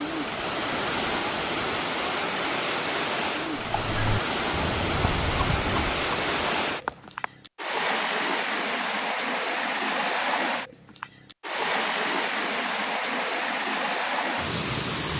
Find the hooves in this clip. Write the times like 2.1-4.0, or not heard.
3.5-7.3.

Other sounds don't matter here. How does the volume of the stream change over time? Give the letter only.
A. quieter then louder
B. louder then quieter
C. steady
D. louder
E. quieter
C.